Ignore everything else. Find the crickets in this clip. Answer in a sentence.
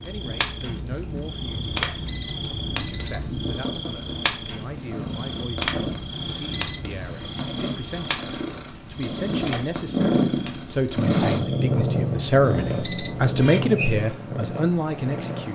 You can hear the crickets from 0.0 to 15.5 s.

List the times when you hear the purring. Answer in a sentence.
The purring can be heard from 0.0 to 15.5 s.